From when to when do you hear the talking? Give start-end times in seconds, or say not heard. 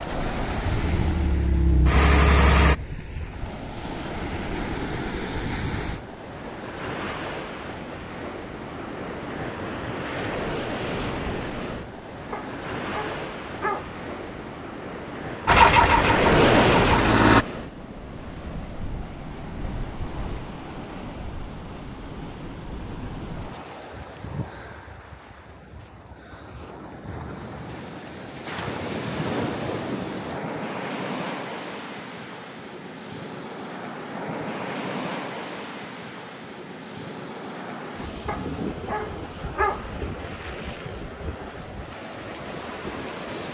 not heard.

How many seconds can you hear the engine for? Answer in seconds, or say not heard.
5 s.